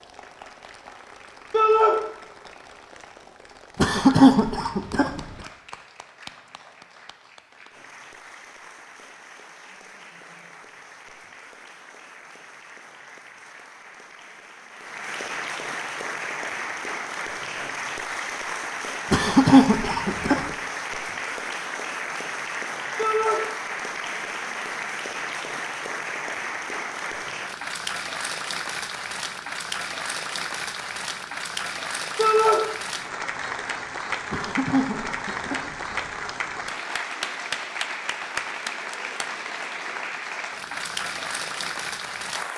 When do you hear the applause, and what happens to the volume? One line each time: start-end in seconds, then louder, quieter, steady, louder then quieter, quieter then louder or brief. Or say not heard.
0.0-42.5 louder.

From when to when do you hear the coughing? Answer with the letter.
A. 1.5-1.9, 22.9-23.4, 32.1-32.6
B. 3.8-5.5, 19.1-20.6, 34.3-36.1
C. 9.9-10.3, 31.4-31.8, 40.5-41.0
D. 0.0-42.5
B.